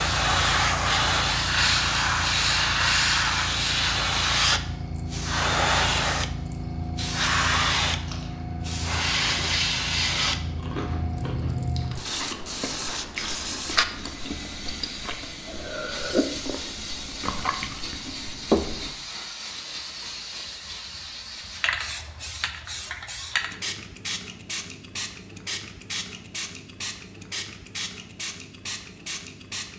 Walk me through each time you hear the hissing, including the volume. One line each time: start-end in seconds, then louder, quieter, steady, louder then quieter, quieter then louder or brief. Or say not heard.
0.0-29.7 quieter.